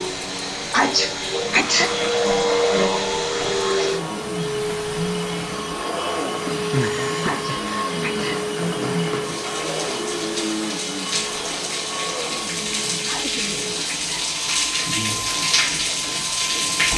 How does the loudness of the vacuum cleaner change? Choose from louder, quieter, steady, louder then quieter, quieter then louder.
quieter.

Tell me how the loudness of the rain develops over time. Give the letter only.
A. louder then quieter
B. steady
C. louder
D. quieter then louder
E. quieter
C.